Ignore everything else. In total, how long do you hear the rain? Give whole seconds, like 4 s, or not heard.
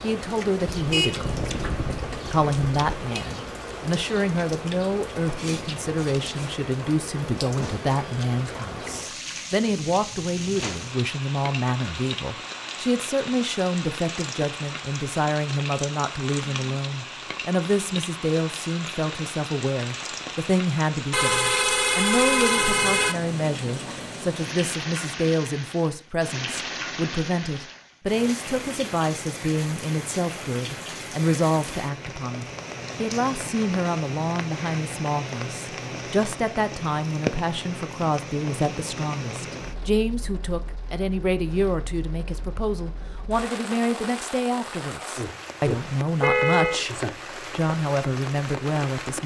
49 s.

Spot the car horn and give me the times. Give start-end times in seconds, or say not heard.
0.7-3.2, 21.1-23.1, 46.2-46.8.